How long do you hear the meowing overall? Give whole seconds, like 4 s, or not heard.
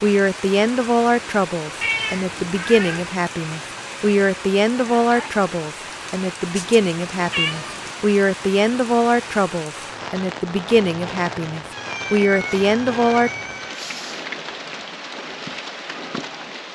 5 s.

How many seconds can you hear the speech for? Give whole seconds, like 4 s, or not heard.
13 s.